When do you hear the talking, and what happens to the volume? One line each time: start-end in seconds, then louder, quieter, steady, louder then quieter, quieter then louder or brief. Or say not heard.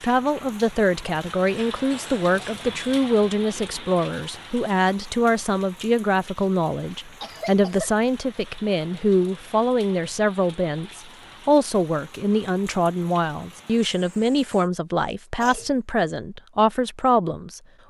0.0-17.6 steady.